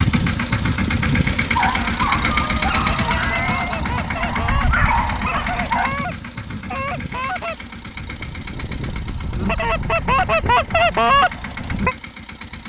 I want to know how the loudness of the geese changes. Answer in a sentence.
The loudness of the geese goes up.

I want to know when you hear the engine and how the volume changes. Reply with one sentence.
The engine can be heard from 0.0 to 12.6 s, getting quieter.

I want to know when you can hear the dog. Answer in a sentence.
The dog can be heard from 1.6 to 5.9 s.